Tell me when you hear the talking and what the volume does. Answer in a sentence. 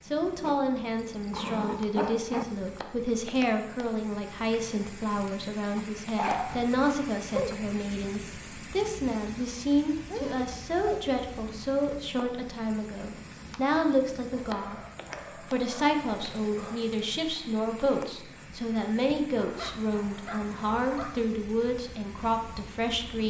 The talking can be heard from 0.1 to 23.2 s, at a steady volume.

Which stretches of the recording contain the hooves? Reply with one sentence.
The hooves can't be heard in this clip.